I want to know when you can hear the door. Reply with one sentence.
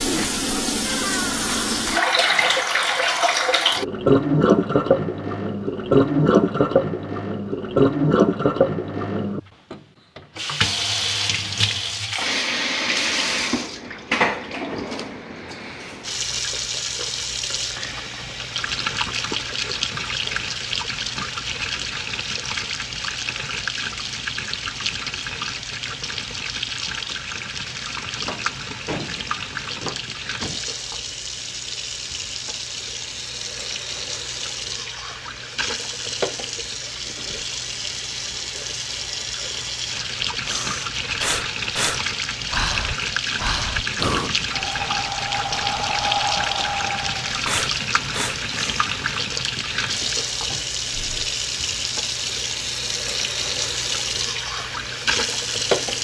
The door can be heard from 0.8 to 1.9 s, from 28.1 to 30.6 s and from 50.5 to 51.4 s.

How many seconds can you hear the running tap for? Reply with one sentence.
You can hear the running tap for 56 seconds altogether.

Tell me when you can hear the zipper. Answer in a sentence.
The zipper can't be heard in this clip.